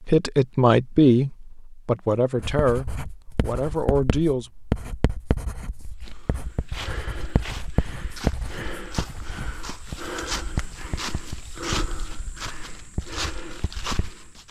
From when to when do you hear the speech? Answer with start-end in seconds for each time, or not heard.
0.1-4.5.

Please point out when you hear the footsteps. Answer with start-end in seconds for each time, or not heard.
6.0-14.4.